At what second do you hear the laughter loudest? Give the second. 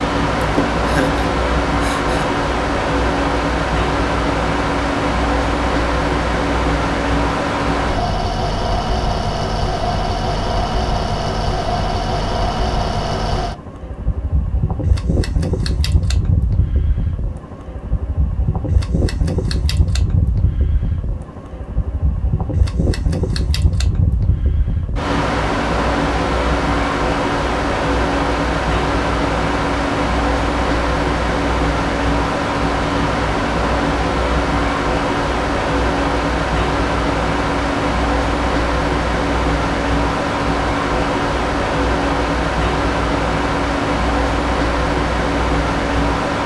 1 s.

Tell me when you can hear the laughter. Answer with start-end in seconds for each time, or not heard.
0.3-2.3.